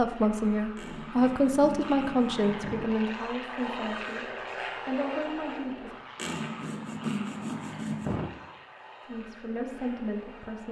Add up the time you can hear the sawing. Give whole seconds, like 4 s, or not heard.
4 s.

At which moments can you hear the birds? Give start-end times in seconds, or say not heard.
not heard.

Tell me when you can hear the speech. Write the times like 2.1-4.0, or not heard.
0.0-6.0, 9.1-10.6.